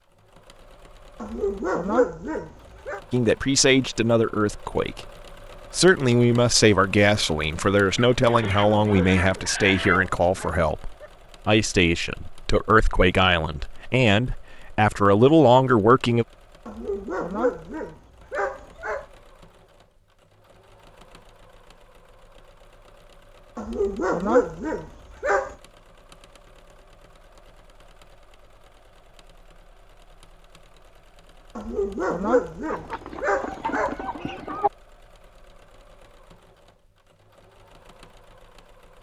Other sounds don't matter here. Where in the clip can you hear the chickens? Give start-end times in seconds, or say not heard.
8.1-10.0, 32.6-34.7.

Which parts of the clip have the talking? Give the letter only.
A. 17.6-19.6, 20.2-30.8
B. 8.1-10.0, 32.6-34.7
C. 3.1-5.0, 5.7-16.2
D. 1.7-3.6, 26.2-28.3
C.